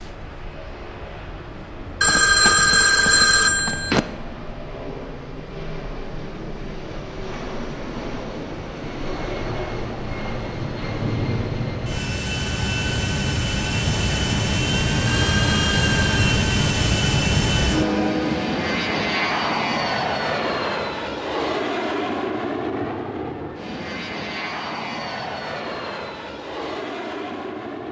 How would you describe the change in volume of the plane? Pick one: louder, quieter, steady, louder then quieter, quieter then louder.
louder then quieter.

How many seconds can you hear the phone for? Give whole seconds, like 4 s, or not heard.
3 s.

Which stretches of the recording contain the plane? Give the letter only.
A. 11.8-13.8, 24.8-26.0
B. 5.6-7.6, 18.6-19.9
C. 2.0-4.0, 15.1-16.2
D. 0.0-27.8
D.